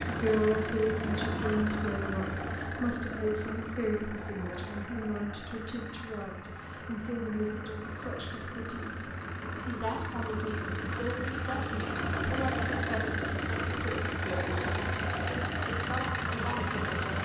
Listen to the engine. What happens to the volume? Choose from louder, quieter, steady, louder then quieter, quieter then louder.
quieter then louder.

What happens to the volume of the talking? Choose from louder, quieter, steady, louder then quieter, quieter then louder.
quieter.